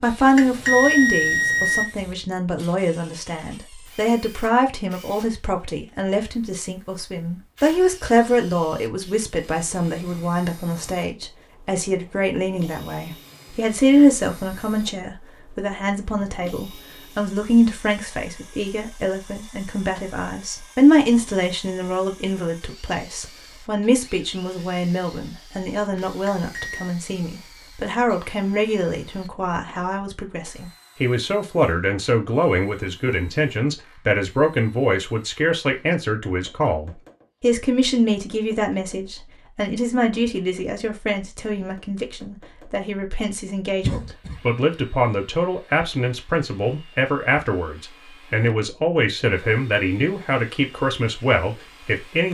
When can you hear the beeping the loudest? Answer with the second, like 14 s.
1 s.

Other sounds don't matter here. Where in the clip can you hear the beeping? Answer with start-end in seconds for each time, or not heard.
0.3-1.9, 26.2-26.9.